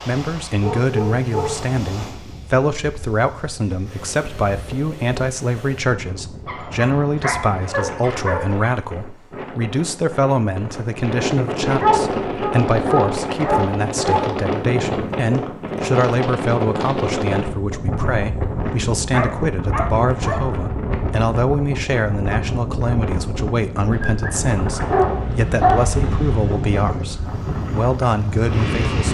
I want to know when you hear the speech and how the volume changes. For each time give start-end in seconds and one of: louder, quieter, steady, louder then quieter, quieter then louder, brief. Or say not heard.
0.1-29.1 steady.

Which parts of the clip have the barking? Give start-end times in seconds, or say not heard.
0.6-1.6, 6.5-8.7, 11.8-14.3, 19.1-20.4, 23.9-25.9.